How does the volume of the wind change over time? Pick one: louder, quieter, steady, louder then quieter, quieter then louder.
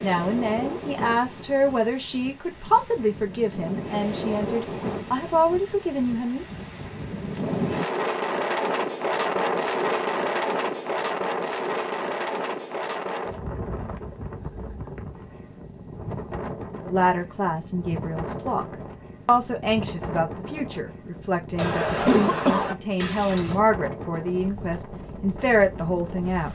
louder then quieter.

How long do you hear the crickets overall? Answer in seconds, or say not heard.
not heard.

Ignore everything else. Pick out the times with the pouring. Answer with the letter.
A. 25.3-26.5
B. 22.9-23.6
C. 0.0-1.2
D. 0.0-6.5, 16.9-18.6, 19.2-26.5
B.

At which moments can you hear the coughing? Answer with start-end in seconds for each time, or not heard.
21.6-22.8.